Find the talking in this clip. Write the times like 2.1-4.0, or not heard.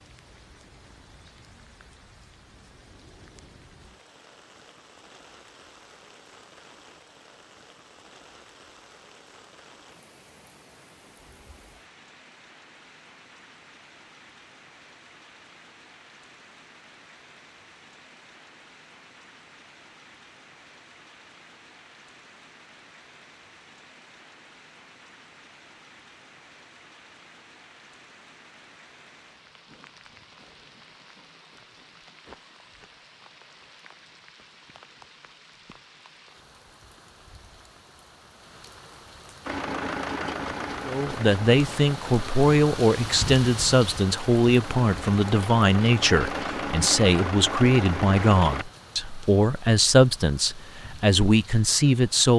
40.9-52.3.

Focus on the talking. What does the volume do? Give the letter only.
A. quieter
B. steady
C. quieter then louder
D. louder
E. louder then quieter
B.